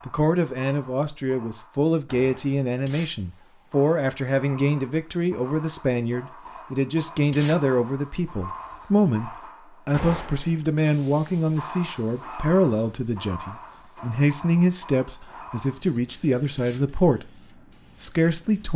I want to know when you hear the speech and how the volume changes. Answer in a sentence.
You can hear the speech from 0.1 to 18.7 s, at a steady volume.